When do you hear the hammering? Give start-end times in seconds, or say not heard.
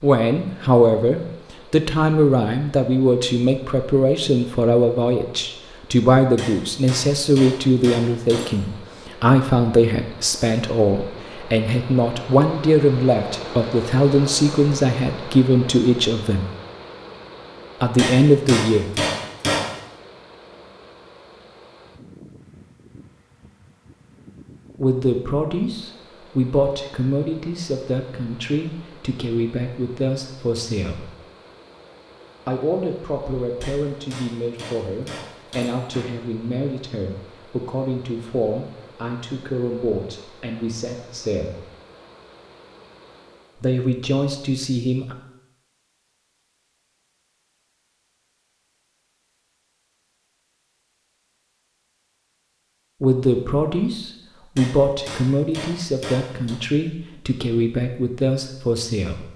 6.3-8.6, 17.9-19.7, 33.6-36.1, 54.5-56.6.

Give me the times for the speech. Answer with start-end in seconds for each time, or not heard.
0.0-16.4, 17.8-19.0, 24.8-31.1, 32.5-41.6, 43.5-45.1, 53.0-59.2.